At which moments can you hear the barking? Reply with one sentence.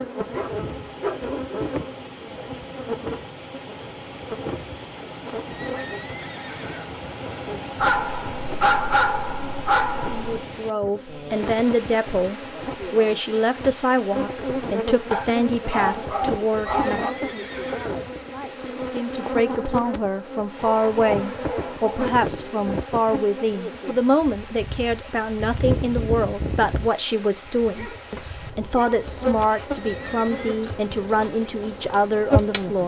You can hear the barking from 0.3 to 1.6 s, from 7.8 to 10.3 s, from 15.1 to 17.1 s, from 20.6 to 22.1 s and from 27.6 to 29.4 s.